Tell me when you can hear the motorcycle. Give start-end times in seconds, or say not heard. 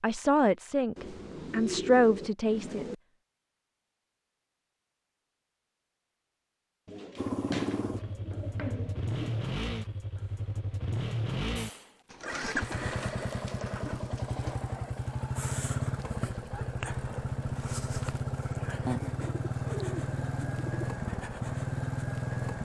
7.2-22.5.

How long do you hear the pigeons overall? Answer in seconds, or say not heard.
9 s.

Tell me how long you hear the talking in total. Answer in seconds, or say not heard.
3 s.